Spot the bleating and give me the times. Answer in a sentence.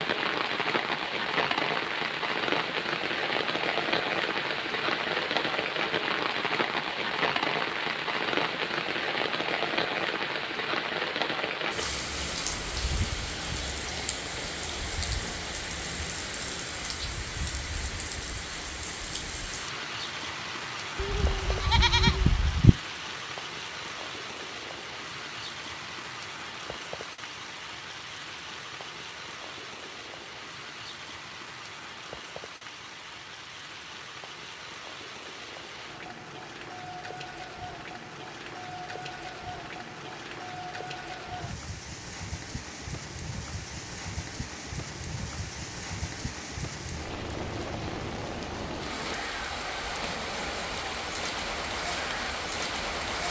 You can hear the bleating from 20.9 to 22.7 s.